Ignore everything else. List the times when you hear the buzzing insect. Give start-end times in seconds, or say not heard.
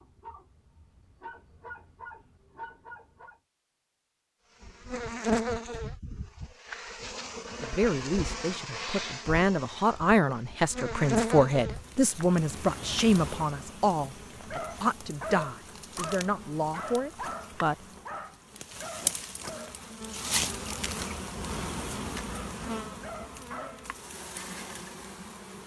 4.6-25.6.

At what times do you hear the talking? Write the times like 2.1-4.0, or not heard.
7.5-17.8.